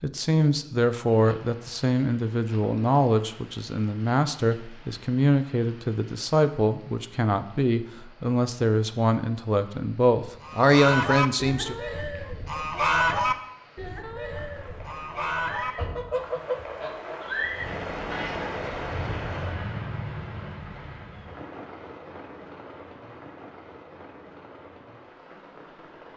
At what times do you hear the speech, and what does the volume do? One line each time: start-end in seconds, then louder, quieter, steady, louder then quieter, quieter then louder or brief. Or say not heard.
0.0-11.8 steady.